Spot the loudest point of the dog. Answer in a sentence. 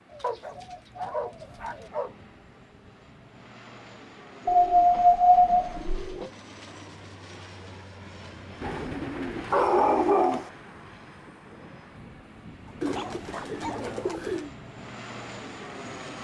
The loudest moment of the dog is at 5 seconds.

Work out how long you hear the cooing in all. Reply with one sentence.
You can hear the cooing for 7 seconds altogether.